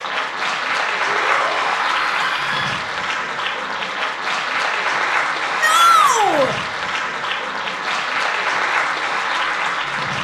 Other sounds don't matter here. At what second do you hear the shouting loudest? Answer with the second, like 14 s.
6 s.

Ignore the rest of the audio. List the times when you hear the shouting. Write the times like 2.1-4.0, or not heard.
1.1-2.8, 5.6-6.5.